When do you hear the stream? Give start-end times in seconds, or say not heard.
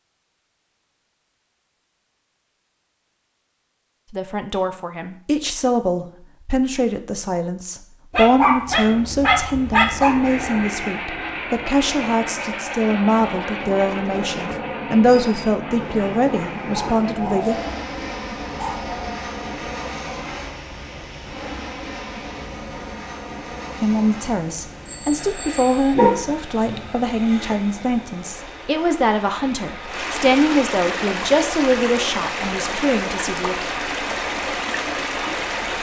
15.9-35.7.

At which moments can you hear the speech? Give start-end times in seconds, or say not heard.
4.1-17.6, 23.8-33.6.